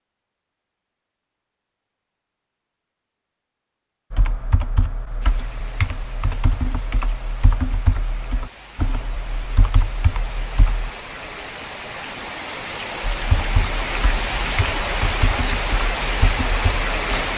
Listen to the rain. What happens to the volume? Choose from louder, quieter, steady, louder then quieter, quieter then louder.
louder.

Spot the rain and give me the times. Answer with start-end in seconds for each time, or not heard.
5.2-17.3.